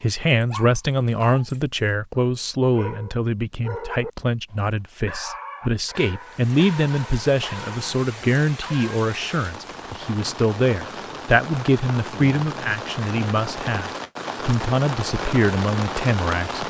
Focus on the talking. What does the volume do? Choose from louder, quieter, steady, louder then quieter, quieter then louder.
steady.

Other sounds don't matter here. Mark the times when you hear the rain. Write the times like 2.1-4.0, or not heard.
6.2-16.6.